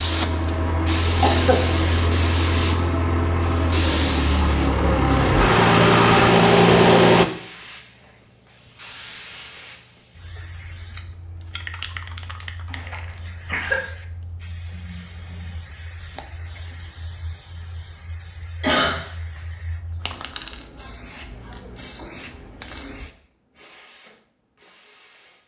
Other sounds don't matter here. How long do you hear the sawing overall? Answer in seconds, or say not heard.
not heard.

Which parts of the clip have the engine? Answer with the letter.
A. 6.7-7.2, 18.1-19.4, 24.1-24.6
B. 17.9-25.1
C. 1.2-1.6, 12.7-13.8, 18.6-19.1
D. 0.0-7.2
D.